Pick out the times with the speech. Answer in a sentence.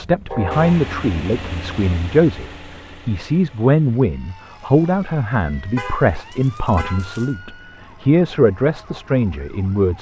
You can hear the speech from 0.0 to 9.9 s.